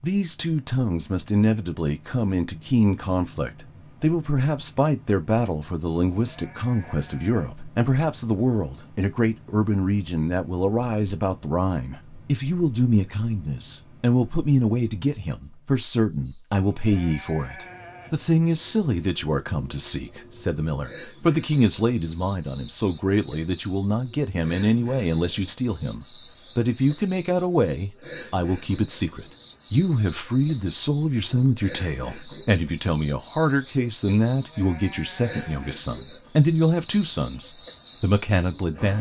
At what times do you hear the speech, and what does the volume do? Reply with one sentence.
You can hear the speech from 0.0 to 38.9 s, at a steady volume.